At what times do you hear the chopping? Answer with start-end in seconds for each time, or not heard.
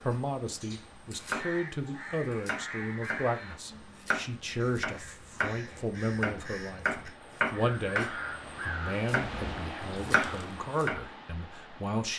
0.0-3.2, 4.0-9.2, 10.0-11.0.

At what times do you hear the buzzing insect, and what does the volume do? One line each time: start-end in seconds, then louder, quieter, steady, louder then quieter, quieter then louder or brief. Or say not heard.
not heard.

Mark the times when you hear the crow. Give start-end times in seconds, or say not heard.
1.2-10.7.